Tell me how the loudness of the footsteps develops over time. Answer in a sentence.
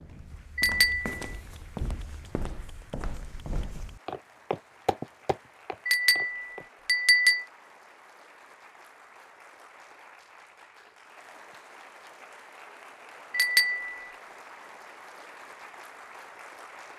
The volume of the footsteps goes up, then down.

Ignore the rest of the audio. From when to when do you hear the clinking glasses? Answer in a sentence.
The clinking glasses can be heard from 0.6 to 1.1 s, from 5.8 to 7.5 s and from 13.3 to 13.9 s.